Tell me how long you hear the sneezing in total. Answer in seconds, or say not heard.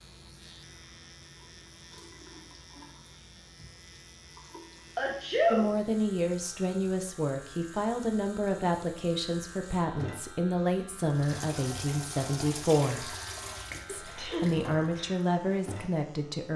2 s.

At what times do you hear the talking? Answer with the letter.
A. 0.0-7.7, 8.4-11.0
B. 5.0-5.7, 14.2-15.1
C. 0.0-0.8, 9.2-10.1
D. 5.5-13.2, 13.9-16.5
D.